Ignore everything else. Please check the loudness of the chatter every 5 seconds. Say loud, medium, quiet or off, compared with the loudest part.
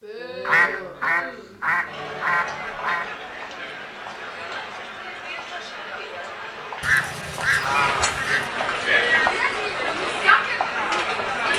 quiet, loud, loud.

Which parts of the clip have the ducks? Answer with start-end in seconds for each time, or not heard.
0.5-3.0, 6.8-8.5.